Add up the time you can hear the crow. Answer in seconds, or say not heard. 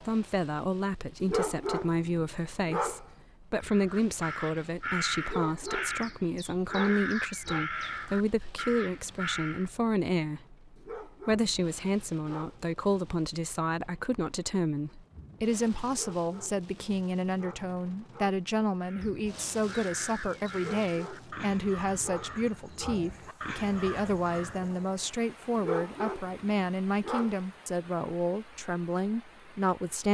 12 s.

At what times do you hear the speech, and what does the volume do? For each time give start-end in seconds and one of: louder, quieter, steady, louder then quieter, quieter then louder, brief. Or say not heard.
0.0-30.1 steady.